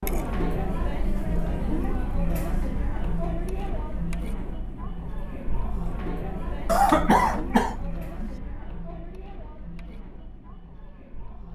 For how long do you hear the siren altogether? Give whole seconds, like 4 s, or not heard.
not heard.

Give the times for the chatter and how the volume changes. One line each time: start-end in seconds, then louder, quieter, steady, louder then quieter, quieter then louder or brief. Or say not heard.
0.0-11.5 quieter.